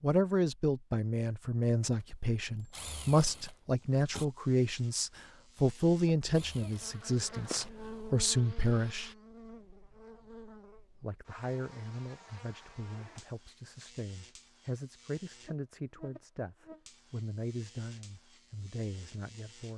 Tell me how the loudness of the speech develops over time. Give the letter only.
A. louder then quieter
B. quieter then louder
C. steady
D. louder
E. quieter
E.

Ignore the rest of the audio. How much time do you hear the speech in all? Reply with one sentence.
The speech can be heard for 18 seconds in total.